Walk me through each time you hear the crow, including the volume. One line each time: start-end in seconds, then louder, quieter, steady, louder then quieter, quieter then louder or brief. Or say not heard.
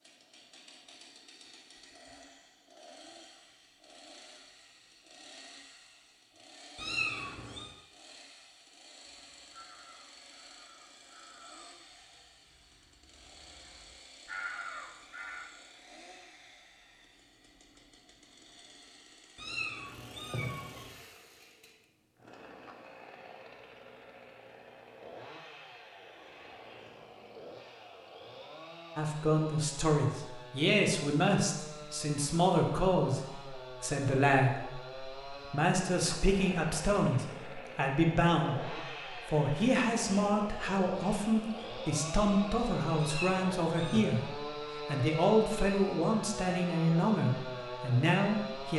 9.2-15.4 quieter then louder.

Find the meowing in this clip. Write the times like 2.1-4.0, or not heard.
6.8-7.7, 19.4-20.9, 43.0-44.0.